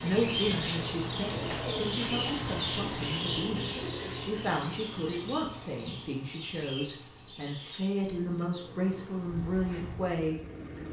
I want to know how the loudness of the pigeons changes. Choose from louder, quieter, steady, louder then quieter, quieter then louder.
quieter.